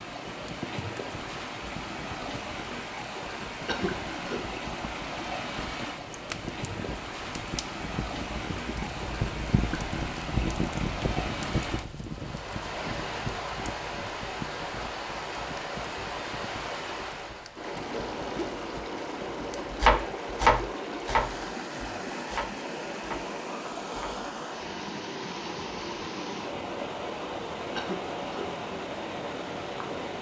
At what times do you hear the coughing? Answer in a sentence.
You can hear the coughing from 3.6 to 4.4 s and from 27.8 to 28.4 s.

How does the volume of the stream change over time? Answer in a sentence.
The loudness of the stream stays about the same.